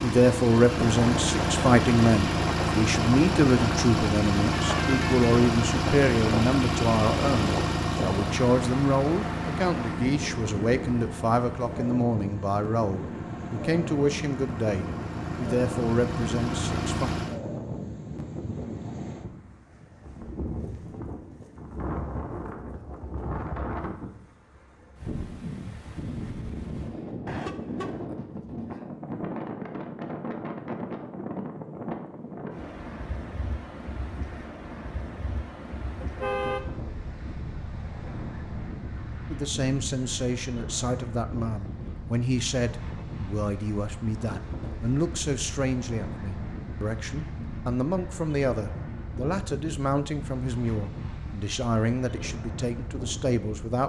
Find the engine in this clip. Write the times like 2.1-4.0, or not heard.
0.0-17.4.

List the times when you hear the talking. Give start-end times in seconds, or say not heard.
0.0-17.1, 39.3-53.8.